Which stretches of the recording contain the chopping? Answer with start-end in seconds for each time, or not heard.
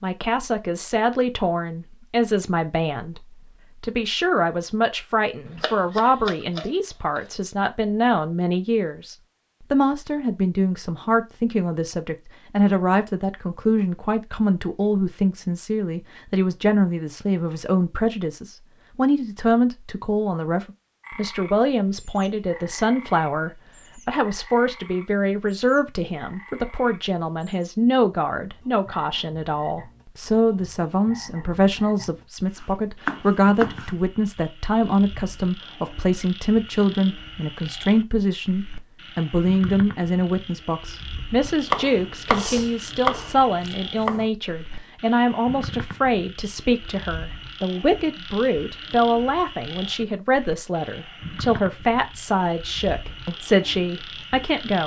5.5-7.2, 32.5-33.9, 41.4-44.2.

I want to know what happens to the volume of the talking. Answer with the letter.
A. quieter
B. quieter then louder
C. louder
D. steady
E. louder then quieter
D.